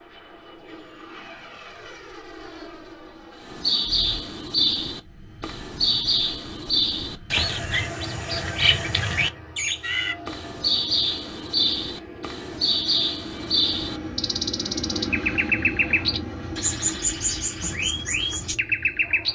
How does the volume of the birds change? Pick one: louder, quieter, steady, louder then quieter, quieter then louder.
steady.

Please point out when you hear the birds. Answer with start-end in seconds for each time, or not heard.
3.4-19.2.